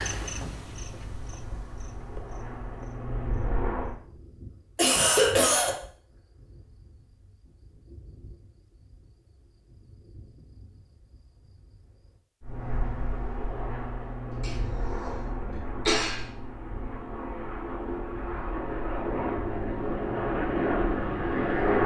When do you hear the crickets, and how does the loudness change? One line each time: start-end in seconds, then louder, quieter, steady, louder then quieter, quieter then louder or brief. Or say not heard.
0.0-12.2 quieter.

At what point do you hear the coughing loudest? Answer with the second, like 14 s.
5 s.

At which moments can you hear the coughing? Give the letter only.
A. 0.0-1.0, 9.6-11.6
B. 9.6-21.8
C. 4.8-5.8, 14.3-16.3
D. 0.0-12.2
C.